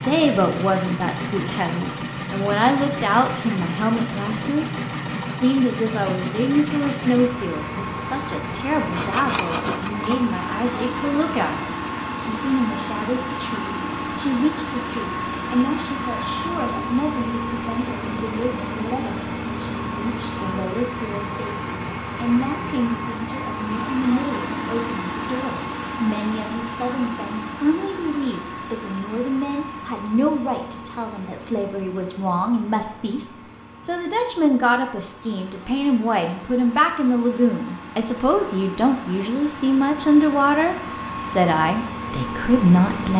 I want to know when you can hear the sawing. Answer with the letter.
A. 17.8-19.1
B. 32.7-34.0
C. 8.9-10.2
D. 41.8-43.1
C.